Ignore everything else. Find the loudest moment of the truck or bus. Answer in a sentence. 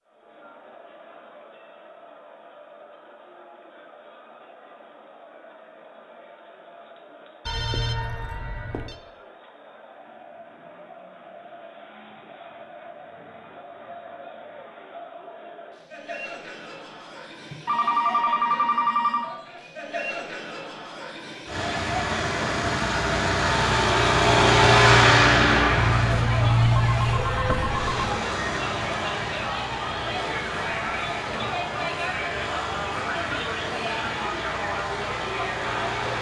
The volume of the truck or bus peaks at 25 seconds.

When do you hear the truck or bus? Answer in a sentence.
The truck or bus can be heard from 21.4 to 36.1 s.